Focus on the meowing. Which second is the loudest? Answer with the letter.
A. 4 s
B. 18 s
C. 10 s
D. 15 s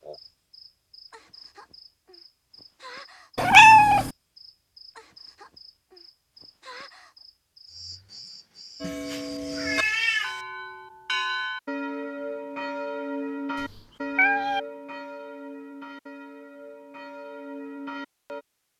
A.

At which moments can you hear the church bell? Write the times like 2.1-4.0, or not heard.
8.8-18.4.